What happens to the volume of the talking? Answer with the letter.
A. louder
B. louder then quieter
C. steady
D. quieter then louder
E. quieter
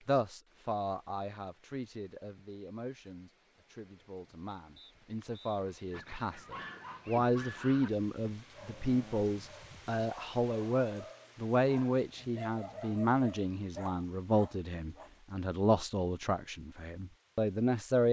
A.